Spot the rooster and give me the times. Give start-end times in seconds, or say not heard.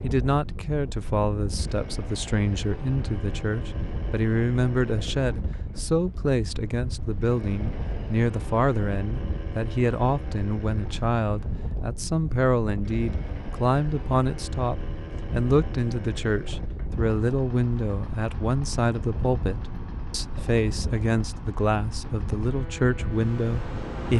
not heard.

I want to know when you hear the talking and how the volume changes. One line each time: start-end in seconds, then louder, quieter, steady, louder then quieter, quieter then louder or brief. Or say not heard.
0.0-24.1 steady.